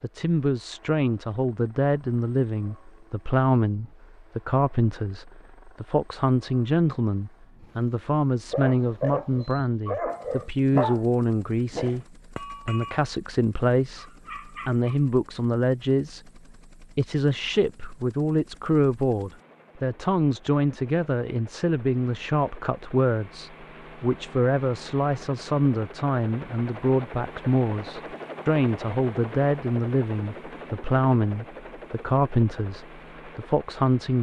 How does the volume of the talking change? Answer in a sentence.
The volume of the talking stays about the same.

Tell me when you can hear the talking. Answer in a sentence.
The talking can be heard from 0.0 to 34.1 s.